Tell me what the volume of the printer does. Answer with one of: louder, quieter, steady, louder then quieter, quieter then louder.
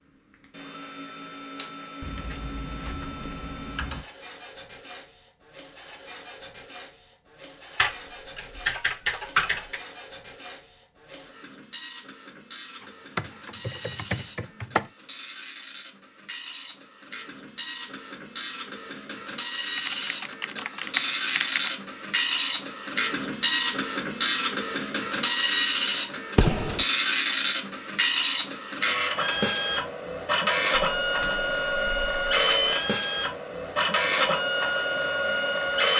louder.